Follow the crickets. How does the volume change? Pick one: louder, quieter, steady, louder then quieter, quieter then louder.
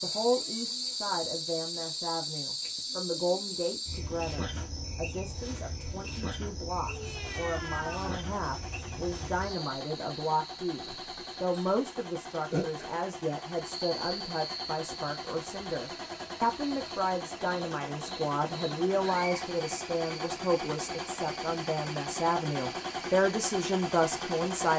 quieter.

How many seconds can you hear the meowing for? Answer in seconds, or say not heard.
2 s.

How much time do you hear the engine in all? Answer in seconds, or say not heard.
18 s.